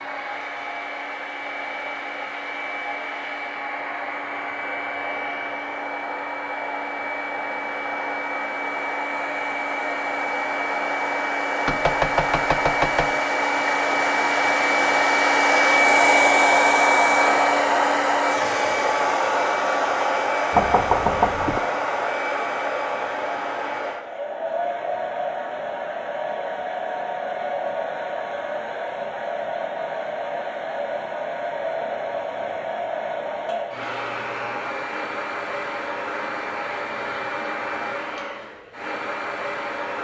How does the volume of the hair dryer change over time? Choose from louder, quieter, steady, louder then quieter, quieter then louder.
louder then quieter.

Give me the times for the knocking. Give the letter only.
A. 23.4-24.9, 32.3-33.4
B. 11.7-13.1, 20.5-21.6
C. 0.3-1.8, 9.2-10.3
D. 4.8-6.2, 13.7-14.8
B.